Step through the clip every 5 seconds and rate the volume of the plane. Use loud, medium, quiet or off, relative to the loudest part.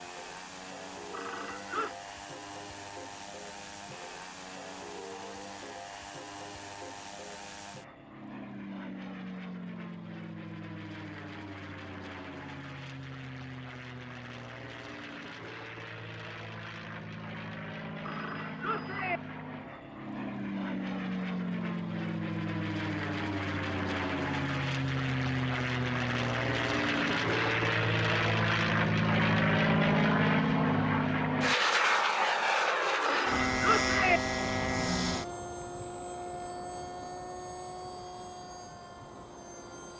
quiet, quiet, quiet, quiet, medium, loud, loud, quiet.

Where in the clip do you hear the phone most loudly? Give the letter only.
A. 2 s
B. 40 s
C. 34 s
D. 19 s
C.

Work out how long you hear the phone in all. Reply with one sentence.
The phone can be heard for 3 seconds in total.